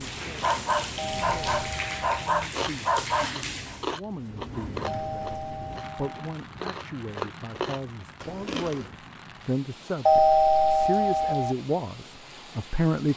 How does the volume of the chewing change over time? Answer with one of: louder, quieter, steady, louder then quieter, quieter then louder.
quieter then louder.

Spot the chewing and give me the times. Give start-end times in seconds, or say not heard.
2.5-8.9.